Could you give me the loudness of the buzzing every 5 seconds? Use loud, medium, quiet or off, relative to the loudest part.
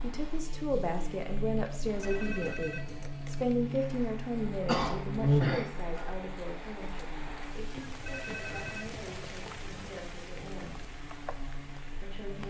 medium, loud, quiet.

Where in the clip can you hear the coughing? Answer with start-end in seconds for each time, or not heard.
4.7-6.2.